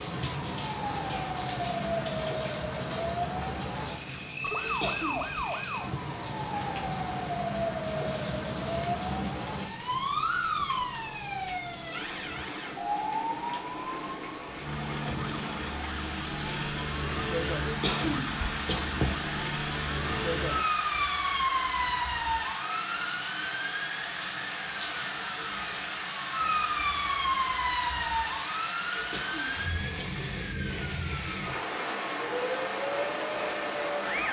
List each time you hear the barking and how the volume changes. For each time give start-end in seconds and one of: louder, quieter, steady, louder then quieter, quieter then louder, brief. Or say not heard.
not heard.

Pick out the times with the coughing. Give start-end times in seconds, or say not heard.
4.6-5.4, 17.6-19.2, 28.9-30.2.